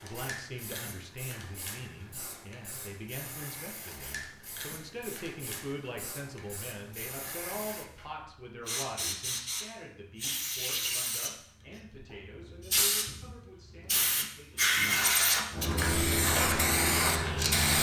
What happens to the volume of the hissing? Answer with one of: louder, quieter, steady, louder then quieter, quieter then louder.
louder.